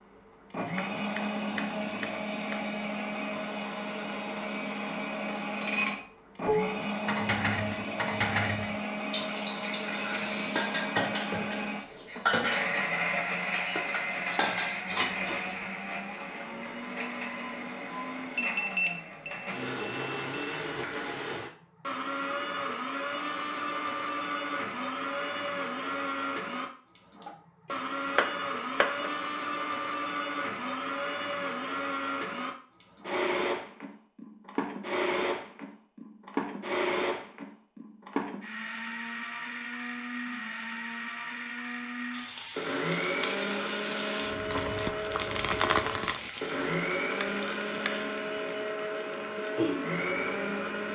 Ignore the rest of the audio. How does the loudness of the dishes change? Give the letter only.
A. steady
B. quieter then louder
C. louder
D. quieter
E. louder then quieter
A.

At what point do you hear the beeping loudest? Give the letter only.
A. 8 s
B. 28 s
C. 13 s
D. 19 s
D.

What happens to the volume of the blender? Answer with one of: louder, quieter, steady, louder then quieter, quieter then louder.
steady.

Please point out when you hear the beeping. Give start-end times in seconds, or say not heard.
18.4-20.6.